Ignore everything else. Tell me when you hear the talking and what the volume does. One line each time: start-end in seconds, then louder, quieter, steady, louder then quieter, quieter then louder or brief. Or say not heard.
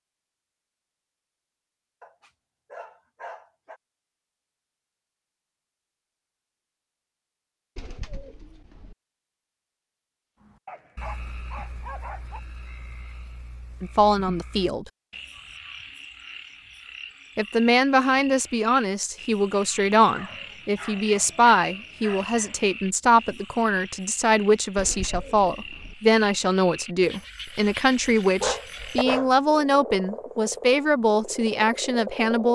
13.8-14.8 brief
17.4-32.5 steady.